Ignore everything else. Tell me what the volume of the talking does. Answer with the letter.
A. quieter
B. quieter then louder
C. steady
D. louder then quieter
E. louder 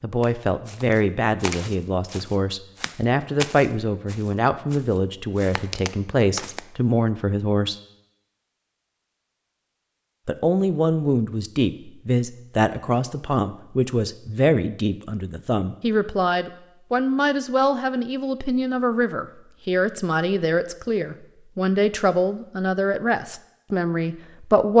C.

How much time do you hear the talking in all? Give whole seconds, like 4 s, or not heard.
22 s.